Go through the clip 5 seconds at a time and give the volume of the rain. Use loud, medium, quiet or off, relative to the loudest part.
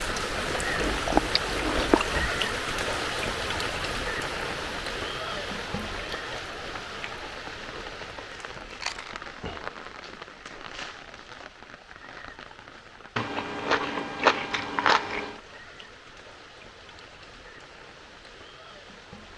loud, medium, quiet, quiet.